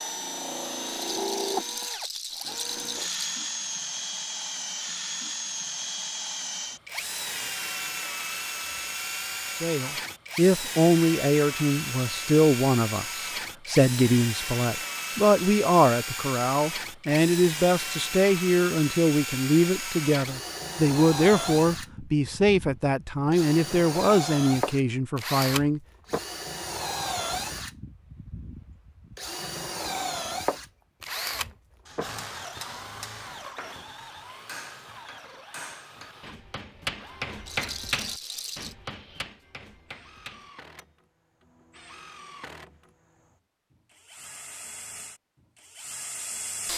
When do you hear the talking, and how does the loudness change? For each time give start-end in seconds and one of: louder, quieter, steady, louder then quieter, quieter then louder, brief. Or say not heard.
9.6-25.8 steady.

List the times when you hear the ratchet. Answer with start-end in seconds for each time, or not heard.
not heard.